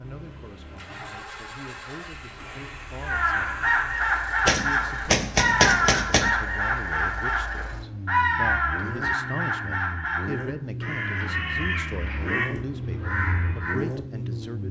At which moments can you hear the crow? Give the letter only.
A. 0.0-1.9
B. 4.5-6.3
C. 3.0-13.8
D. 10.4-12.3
C.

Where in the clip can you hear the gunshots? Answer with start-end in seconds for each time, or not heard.
4.5-6.3.